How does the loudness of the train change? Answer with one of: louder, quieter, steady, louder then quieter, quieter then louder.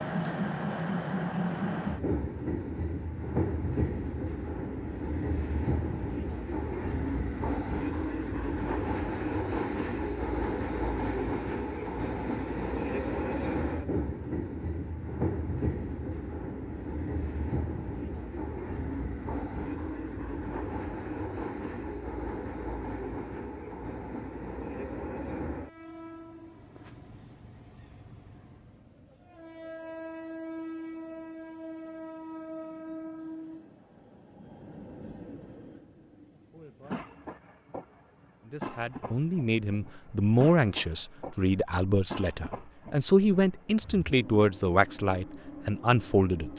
quieter.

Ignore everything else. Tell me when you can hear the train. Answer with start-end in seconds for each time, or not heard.
0.0-46.5.